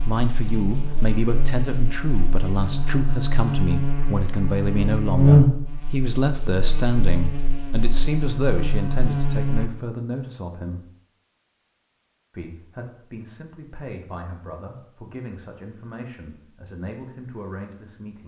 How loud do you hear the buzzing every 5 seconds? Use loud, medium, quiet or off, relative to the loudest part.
medium, loud, off, off.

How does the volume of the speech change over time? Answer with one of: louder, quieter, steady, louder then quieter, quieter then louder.
quieter.